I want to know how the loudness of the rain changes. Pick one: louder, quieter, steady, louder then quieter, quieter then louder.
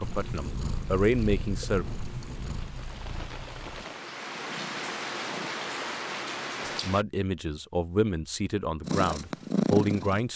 louder.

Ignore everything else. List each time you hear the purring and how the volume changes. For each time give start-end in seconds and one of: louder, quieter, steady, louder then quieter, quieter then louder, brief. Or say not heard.
0.0-5.5 quieter
8.8-10.3 brief.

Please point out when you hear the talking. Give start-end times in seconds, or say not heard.
0.0-1.9, 6.7-10.3.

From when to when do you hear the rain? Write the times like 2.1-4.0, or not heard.
0.0-7.0.